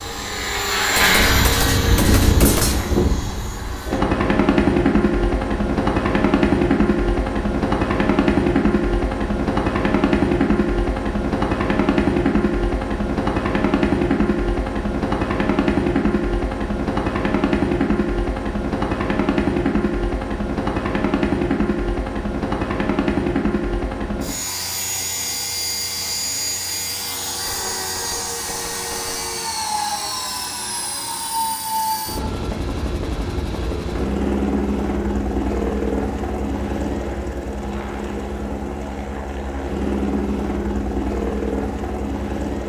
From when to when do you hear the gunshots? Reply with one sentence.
The gunshots can be heard from 0.9 to 2.9 s and from 27.4 to 29.4 s.